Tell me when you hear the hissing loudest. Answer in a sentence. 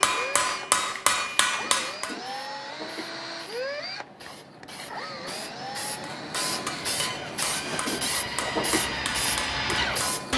The loudest moment of the hissing is at 8 seconds.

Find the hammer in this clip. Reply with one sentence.
The hammer can be heard from 0.0 to 2.1 s and from 6.0 to 10.3 s.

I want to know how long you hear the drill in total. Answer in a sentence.
The drill can be heard for 10 seconds in total.